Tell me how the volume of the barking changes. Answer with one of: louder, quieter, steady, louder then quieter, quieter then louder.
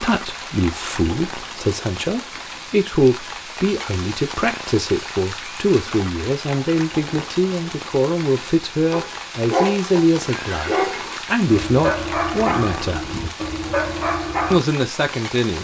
steady.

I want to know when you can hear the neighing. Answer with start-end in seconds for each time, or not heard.
10.3-11.2.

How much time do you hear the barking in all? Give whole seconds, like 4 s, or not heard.
6 s.